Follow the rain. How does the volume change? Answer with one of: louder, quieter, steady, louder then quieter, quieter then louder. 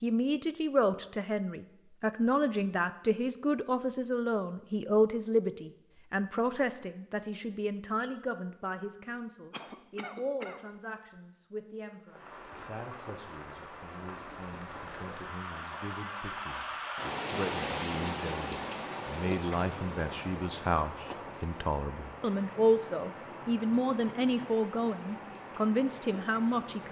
louder then quieter.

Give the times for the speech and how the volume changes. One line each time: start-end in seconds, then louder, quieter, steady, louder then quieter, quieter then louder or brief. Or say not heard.
0.0-26.8 quieter then louder.